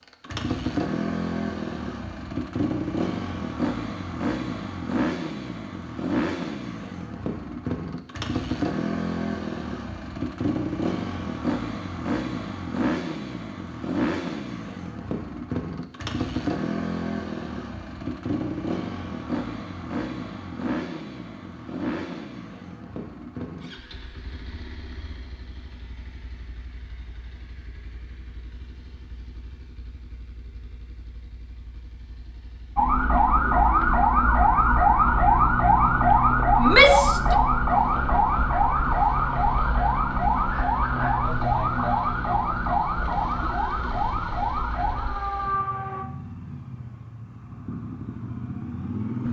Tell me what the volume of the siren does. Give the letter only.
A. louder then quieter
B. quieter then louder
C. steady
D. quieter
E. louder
D.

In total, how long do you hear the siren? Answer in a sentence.
The siren can be heard for 13 seconds in total.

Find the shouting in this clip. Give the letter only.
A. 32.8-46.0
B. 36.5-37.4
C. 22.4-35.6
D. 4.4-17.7
B.